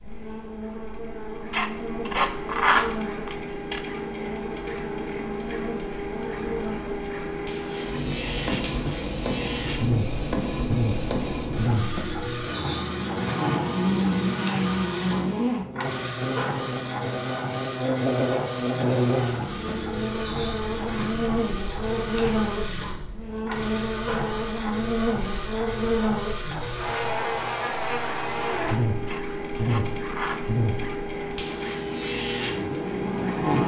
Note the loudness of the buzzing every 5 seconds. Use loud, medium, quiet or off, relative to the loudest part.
medium, medium, loud, loud, loud, loud, loud.